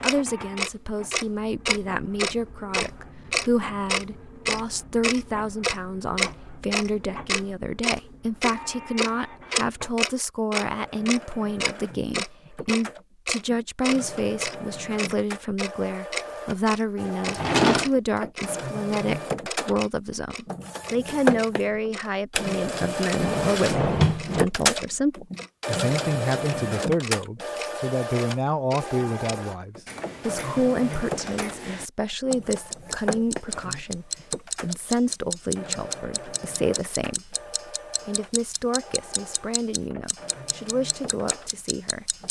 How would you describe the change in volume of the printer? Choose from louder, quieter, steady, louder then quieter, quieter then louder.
louder then quieter.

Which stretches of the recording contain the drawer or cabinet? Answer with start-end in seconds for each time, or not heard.
17.2-17.9, 23.1-24.4.